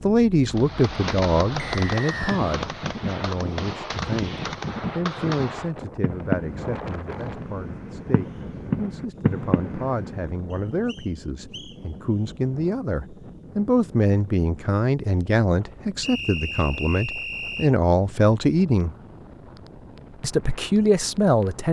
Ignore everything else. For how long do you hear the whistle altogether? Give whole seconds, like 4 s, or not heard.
4 s.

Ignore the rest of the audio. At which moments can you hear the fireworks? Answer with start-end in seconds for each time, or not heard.
0.5-10.2.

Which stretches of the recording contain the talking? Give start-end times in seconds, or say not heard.
0.0-18.9, 20.2-21.6.